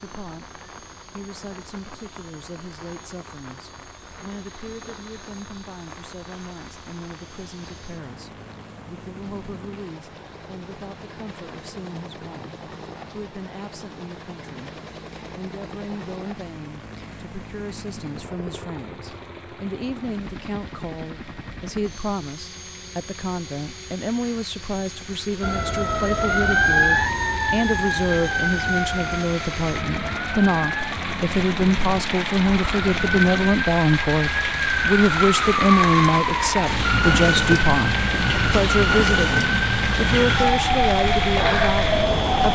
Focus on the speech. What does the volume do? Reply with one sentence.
The volume of the speech goes up.